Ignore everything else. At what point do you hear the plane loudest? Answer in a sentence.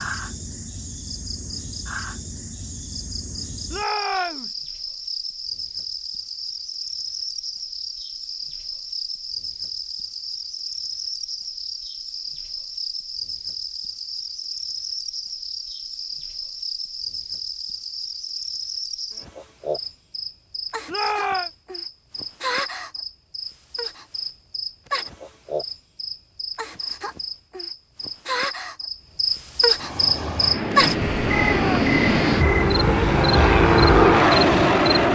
The loudest moment of the plane is at 34 seconds.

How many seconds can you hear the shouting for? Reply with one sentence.
The shouting can be heard for 2 seconds in total.